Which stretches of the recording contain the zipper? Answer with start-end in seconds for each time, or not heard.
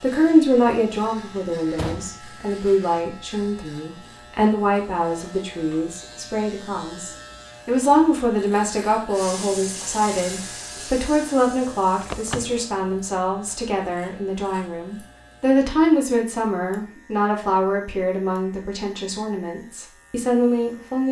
not heard.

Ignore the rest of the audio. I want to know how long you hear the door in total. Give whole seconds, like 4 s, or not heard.
2 s.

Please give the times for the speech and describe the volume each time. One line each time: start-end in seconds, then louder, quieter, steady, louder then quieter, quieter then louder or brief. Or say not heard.
0.0-21.0 steady.